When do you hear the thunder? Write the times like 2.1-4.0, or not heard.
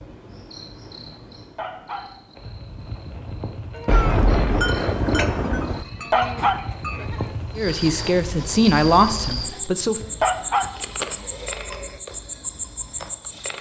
3.9-5.8.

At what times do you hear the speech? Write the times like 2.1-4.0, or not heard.
7.5-10.0.